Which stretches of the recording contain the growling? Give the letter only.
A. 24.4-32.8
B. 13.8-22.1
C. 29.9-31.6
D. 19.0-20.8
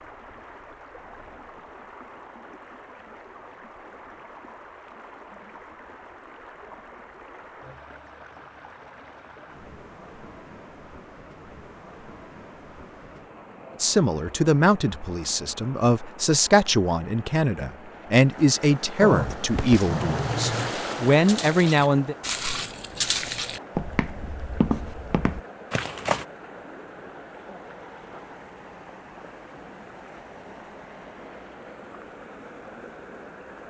D.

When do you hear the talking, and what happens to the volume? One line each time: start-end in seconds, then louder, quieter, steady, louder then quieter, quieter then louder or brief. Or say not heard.
13.8-22.1 steady.